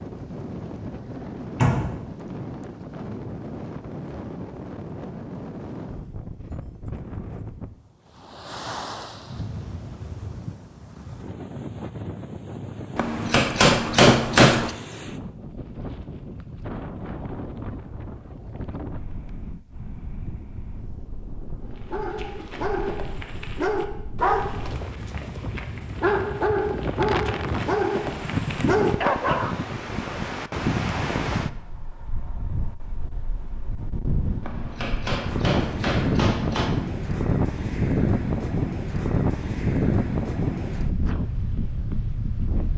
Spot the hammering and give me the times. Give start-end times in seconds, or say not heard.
12.9-14.7, 34.4-36.8.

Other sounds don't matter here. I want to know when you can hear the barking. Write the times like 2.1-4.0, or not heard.
21.7-29.5.